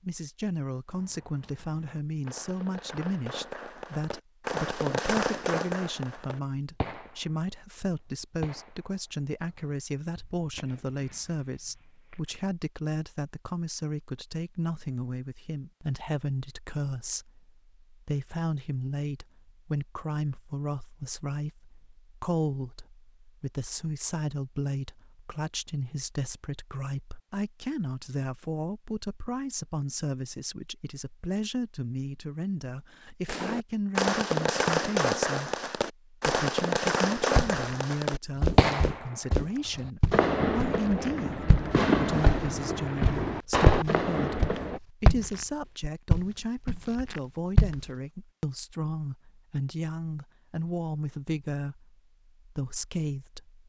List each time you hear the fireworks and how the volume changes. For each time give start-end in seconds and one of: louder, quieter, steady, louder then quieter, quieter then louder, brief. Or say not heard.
0.8-12.4 louder then quieter
33.2-44.8 steady.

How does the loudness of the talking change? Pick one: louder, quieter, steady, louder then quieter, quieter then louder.
steady.